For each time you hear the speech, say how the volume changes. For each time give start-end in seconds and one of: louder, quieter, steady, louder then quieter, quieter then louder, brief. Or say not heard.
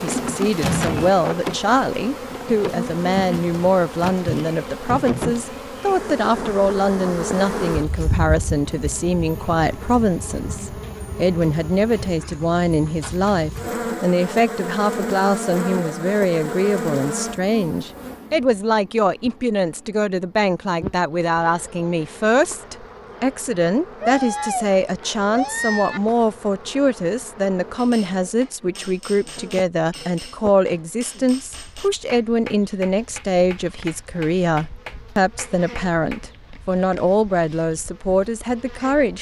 0.0-39.1 steady.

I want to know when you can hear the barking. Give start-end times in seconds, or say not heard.
24.0-26.0.